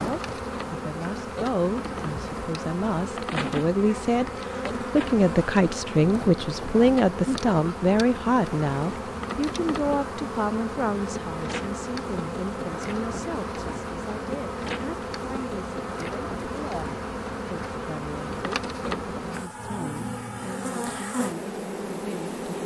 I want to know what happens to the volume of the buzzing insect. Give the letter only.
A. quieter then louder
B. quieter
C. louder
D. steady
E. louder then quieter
D.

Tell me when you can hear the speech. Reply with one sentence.
You can hear the speech from 0.0 to 22.6 s.